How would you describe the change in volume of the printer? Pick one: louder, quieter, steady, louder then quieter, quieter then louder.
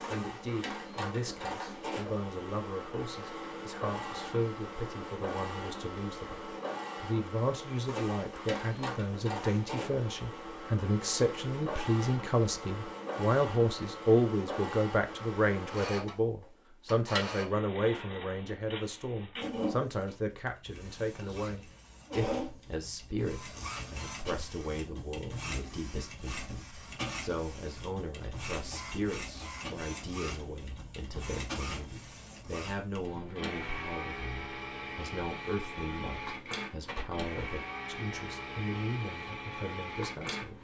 steady.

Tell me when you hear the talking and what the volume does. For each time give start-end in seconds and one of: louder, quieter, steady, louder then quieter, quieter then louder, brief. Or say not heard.
0.1-40.5 louder then quieter.